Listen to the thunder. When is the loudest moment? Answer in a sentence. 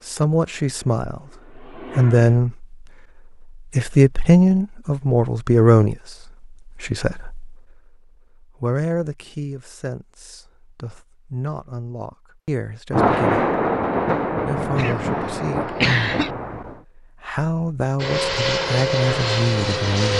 The volume of the thunder peaks at 13 seconds.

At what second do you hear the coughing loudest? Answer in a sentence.
The loudest moment of the coughing is at 16 seconds.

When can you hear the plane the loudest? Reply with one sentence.
The loudest moment of the plane is at 19 seconds.